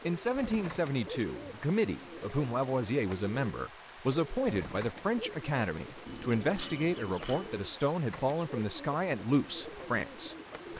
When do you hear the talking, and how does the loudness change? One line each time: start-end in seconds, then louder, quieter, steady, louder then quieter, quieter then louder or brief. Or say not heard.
0.0-10.7 steady.